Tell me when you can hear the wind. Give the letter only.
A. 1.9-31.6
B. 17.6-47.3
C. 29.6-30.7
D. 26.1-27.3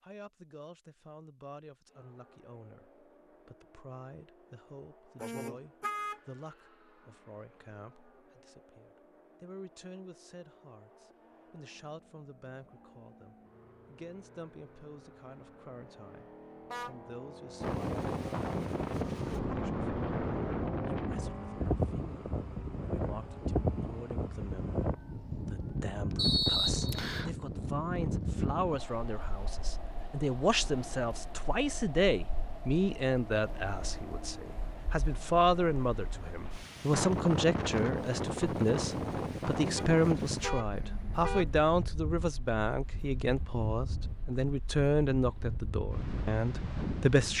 B.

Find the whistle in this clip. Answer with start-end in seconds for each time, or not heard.
26.1-27.3.